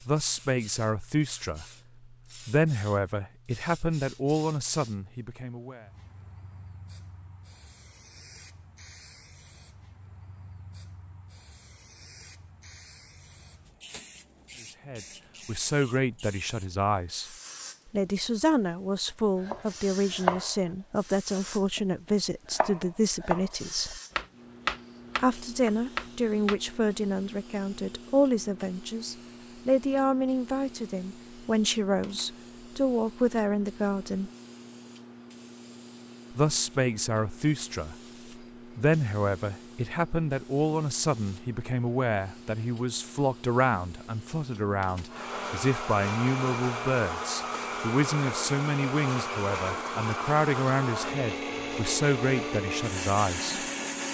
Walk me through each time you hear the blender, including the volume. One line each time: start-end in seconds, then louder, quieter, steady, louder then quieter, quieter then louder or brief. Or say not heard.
45.0-54.1 steady.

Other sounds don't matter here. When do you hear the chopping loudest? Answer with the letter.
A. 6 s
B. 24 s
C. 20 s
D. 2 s
C.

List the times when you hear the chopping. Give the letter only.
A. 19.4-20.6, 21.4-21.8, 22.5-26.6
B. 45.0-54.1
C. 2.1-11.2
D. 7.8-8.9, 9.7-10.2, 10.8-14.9
A.